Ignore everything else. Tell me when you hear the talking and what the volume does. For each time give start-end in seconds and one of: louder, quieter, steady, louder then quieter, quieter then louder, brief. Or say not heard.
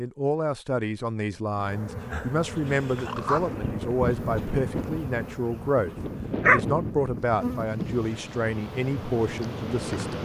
0.0-10.2 steady.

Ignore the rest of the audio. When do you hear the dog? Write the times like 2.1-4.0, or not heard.
2.1-3.5, 6.4-8.2.